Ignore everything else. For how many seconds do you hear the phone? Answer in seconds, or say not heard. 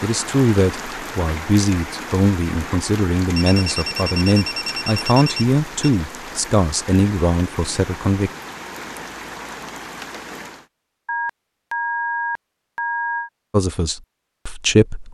5 s.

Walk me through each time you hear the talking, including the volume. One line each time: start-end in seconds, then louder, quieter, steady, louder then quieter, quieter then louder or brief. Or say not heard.
0.0-8.3 steady
13.5-15.0 brief.